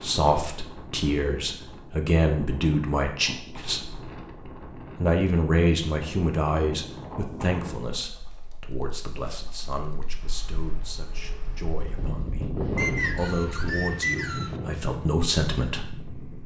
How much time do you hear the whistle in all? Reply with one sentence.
The whistle can be heard for 2 seconds in total.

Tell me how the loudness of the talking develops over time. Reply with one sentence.
The loudness of the talking goes down, then up.